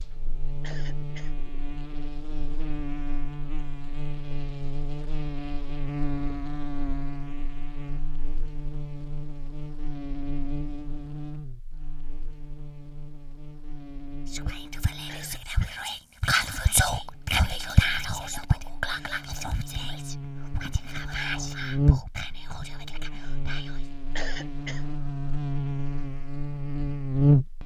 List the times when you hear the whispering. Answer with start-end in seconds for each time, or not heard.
14.3-23.9.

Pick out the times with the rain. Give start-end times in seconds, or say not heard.
not heard.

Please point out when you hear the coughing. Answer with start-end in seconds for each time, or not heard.
0.6-1.4, 15.1-15.8, 24.1-24.9.